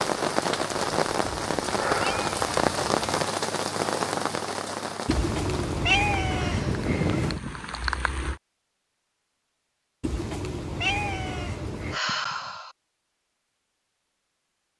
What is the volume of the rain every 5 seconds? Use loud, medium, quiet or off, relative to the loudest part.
loud, medium, off.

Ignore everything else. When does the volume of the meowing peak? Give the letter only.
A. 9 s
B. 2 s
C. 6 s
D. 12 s
C.